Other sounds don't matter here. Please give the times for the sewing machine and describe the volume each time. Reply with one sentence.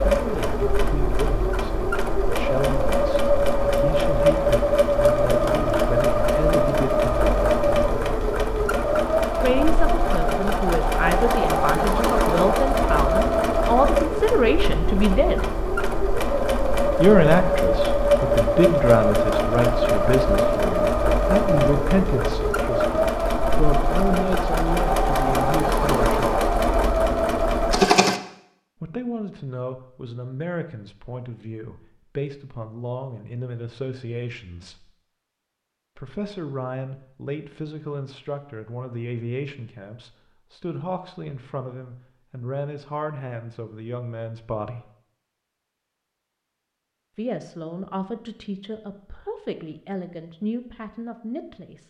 You can hear the sewing machine from 0.0 to 28.2 s, at a steady volume.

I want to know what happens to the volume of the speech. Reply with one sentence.
The loudness of the speech goes up, then down.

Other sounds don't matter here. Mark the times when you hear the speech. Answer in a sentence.
The speech can be heard from 0.1 to 7.6 s, from 9.3 to 15.4 s, from 16.9 to 26.2 s, from 28.8 to 34.9 s, from 36.0 to 44.9 s and from 47.1 to 51.8 s.